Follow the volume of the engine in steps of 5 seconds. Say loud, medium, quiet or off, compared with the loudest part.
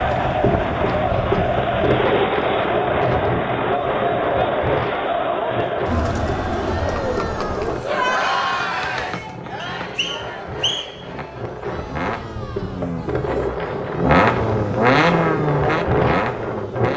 off, quiet, loud, loud.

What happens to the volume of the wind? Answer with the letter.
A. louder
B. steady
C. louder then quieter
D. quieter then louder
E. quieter
D.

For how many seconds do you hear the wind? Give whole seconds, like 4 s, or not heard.
17 s.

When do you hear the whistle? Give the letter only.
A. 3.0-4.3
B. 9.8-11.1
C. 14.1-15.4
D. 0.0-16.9
B.